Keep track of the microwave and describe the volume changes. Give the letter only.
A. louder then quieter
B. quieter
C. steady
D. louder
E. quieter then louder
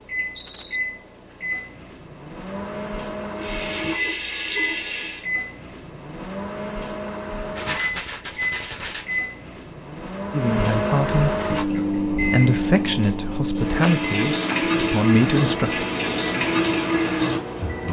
A.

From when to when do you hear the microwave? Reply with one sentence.
The microwave can be heard from 0.0 to 17.8 s.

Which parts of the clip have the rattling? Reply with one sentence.
You can hear the rattling from 0.3 to 0.8 s, from 7.5 to 9.2 s and from 13.8 to 14.6 s.